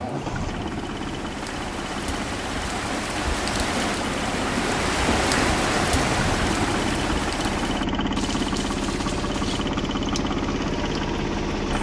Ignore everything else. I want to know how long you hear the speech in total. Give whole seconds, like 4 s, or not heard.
not heard.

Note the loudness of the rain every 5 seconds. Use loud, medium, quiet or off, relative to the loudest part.
loud, loud, quiet.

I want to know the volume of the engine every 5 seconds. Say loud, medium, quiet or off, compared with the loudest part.
medium, loud, loud.